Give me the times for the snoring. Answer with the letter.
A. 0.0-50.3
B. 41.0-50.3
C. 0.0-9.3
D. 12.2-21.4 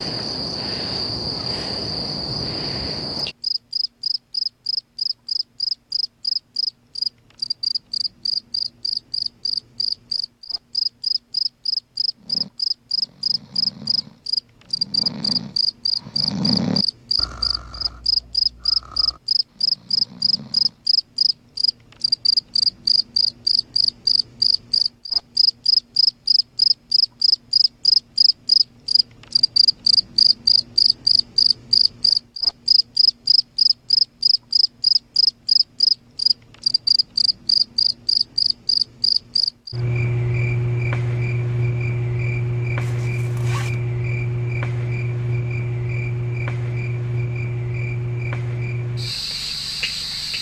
D.